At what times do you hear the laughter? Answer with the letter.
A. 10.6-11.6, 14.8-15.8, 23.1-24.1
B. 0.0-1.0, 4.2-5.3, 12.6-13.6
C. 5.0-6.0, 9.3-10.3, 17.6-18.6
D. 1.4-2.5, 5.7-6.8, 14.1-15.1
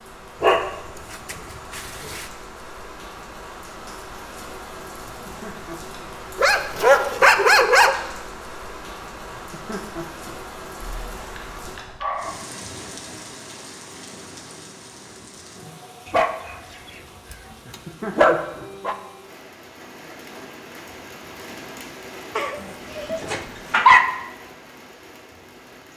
C.